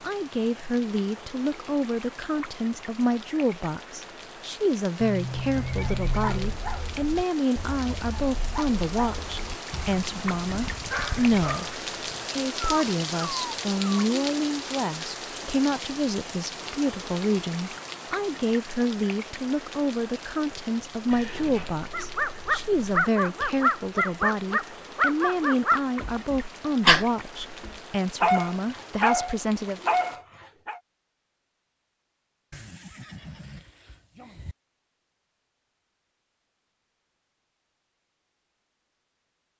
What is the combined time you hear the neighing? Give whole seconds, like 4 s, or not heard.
6 s.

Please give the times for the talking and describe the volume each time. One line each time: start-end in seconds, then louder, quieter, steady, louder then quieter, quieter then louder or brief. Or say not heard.
0.0-29.8 steady.